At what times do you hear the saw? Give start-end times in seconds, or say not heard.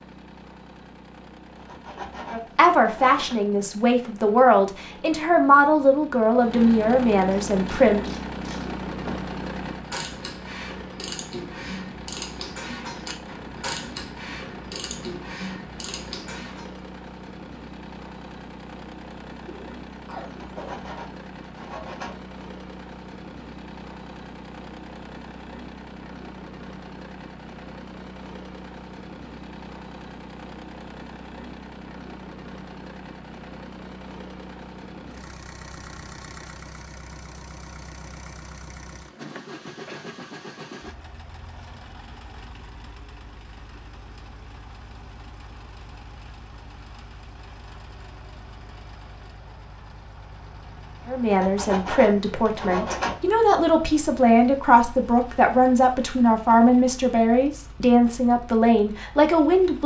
1.6-3.4, 20.4-22.1, 51.3-53.1.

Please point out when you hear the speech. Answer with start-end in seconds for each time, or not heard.
2.3-8.1, 51.0-59.8.